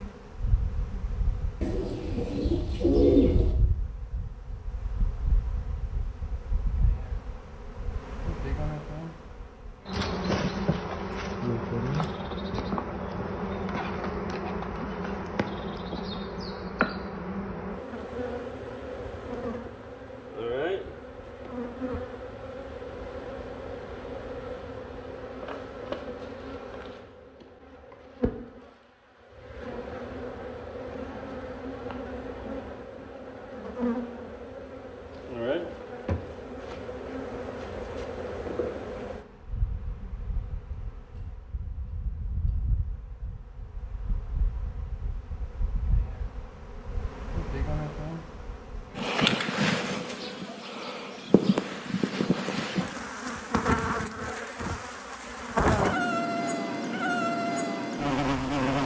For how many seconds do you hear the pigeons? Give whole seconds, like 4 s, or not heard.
2 s.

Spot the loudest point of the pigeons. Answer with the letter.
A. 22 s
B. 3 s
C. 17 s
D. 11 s
B.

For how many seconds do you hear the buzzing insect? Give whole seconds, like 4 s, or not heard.
59 s.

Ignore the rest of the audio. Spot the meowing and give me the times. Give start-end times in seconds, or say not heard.
not heard.